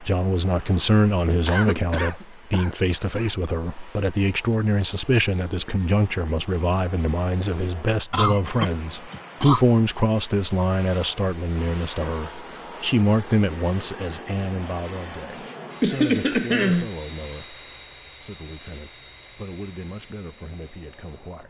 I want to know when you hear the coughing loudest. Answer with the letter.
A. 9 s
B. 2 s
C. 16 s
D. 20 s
C.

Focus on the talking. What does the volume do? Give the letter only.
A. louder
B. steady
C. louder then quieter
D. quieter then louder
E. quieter
E.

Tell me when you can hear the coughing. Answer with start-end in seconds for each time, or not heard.
1.4-3.3, 8.1-9.7, 15.8-16.9.